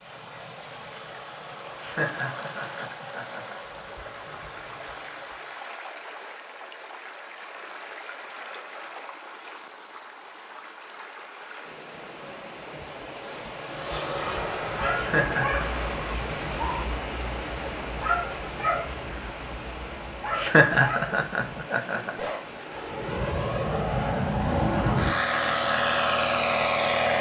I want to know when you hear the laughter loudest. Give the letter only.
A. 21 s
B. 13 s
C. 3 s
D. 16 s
A.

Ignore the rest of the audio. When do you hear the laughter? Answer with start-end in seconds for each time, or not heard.
1.8-3.5, 14.9-15.8, 20.4-22.1.